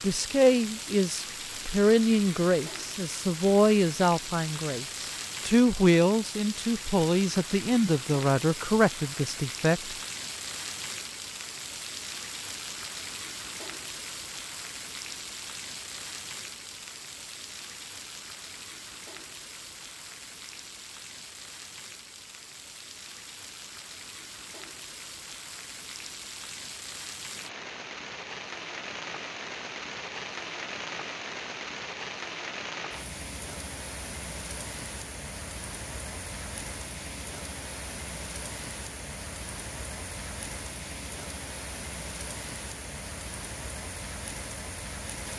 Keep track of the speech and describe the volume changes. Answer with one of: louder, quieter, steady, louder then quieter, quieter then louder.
steady.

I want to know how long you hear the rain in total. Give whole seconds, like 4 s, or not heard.
45 s.